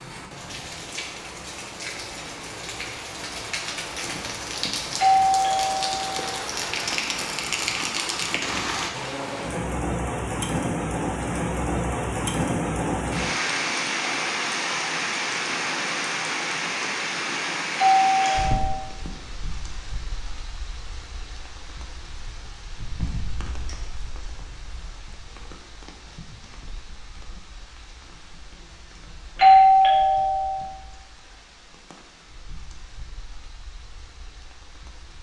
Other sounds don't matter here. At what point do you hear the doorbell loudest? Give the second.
30 s.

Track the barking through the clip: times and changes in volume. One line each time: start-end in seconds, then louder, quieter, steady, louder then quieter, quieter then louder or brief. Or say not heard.
not heard.